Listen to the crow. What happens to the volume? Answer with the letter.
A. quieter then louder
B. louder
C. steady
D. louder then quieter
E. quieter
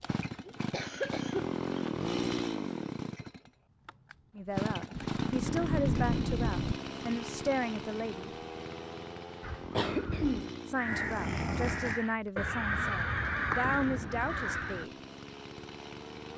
B.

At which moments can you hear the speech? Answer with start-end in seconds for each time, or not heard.
4.3-8.3, 10.7-14.9.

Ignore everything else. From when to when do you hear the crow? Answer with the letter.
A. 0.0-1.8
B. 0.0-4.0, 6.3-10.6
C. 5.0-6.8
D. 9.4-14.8
D.